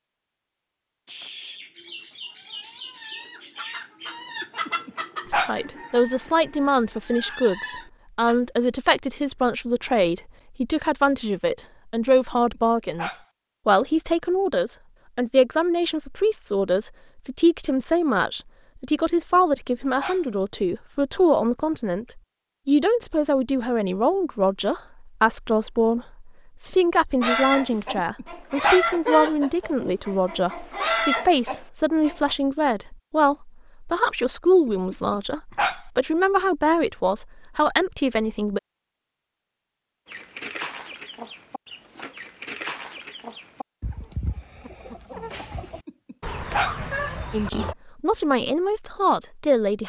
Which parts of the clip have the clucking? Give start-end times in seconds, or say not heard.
1.1-8.4, 27.2-32.4, 40.0-47.8.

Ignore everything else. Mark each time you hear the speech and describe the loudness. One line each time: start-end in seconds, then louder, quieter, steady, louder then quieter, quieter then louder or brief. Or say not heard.
5.3-38.6 steady
47.3-49.8 brief.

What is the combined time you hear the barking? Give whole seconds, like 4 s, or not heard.
6 s.